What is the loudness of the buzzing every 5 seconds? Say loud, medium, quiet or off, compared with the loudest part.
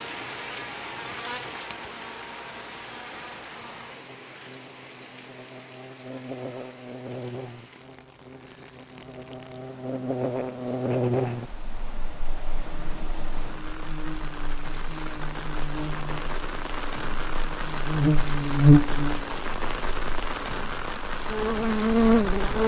quiet, quiet, medium, loud, loud.